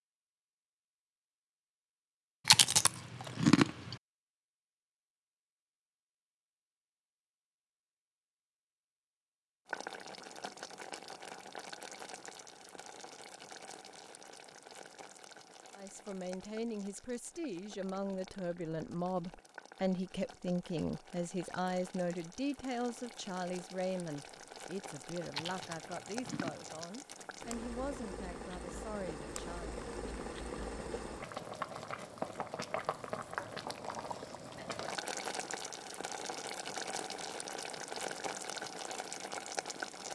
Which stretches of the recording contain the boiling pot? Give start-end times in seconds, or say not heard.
9.7-40.1.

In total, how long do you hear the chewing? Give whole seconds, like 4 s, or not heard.
3 s.